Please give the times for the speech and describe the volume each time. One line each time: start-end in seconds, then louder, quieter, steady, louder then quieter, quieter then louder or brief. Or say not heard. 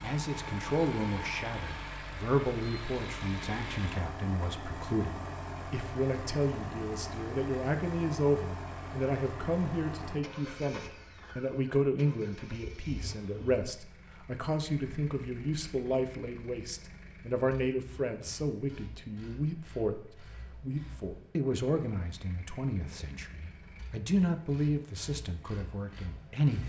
0.0-26.6 steady.